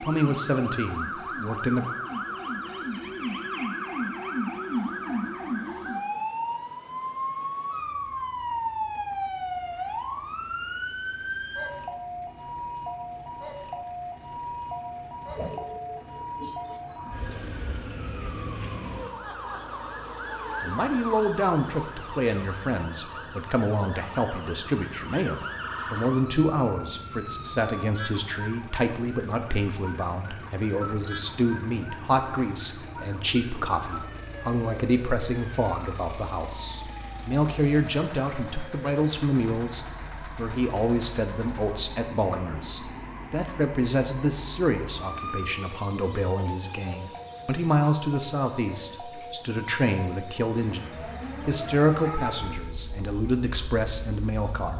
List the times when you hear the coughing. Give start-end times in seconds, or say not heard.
15.2-17.6.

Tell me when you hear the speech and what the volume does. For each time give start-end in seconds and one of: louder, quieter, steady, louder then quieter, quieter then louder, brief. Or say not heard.
0.0-1.9 brief
20.6-54.7 steady.